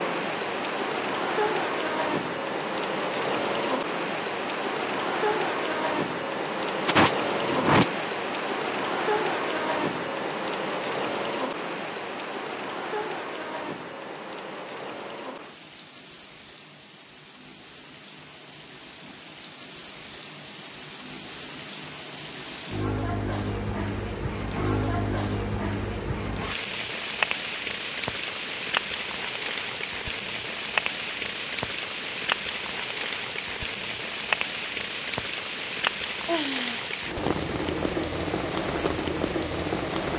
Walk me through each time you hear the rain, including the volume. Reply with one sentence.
You can hear the rain from 0.0 to 40.1 s, getting quieter then louder.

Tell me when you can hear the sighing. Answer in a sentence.
The sighing can be heard from 6.8 to 8.1 s and from 36.2 to 36.9 s.